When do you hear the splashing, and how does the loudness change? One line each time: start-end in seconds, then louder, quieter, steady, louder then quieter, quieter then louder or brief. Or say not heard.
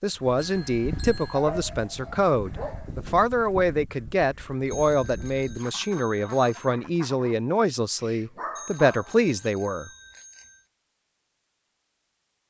not heard.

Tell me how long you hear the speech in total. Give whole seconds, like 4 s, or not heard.
10 s.